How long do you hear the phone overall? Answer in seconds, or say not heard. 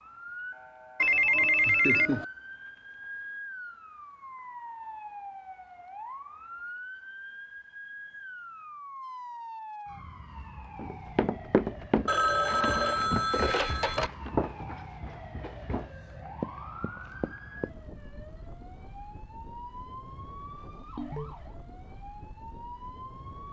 4 s.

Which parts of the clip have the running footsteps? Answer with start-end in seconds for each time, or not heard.
10.8-17.8.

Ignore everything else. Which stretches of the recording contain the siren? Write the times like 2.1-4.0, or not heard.
0.0-23.4.